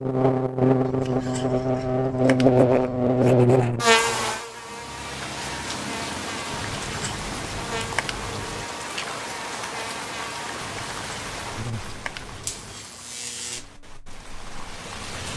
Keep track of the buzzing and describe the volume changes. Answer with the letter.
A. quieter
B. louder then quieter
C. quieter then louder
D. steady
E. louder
A.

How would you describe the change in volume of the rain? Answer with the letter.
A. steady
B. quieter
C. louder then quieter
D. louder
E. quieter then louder
B.